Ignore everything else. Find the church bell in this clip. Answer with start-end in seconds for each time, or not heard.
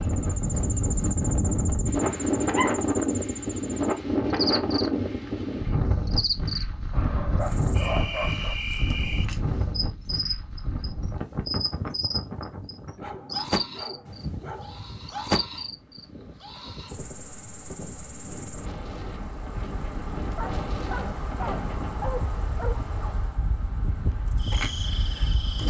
not heard.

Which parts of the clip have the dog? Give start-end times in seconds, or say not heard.
2.0-2.8, 6.9-8.6, 12.9-14.9, 20.4-22.9.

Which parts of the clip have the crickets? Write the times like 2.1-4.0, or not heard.
0.0-25.6.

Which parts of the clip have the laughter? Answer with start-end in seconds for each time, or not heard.
not heard.